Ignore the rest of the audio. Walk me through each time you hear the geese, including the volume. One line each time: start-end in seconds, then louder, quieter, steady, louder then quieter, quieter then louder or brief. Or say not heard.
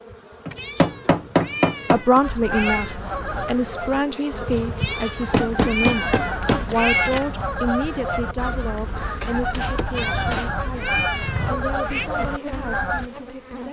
2.2-13.1 steady.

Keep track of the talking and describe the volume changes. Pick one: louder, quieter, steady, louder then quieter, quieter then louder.
quieter.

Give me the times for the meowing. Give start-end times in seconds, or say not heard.
0.6-3.0, 4.8-7.3, 9.9-12.1.